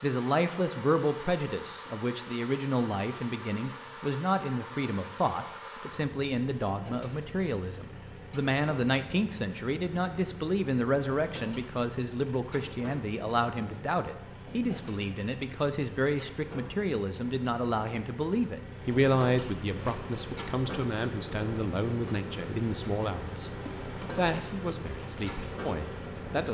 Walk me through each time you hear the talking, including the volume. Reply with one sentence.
The talking can be heard from 0.0 to 23.5 s, at a steady volume; and briefly from 24.1 to 26.4 s.